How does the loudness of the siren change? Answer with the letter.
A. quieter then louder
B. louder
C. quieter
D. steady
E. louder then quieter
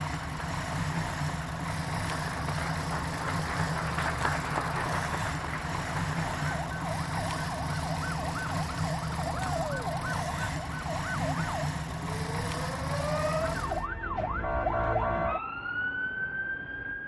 B.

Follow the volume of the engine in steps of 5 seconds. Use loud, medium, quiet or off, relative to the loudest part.
loud, loud, loud, off.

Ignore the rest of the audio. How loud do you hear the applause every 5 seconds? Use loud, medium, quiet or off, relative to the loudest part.
loud, loud, off, off.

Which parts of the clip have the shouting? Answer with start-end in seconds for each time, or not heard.
9.3-9.9.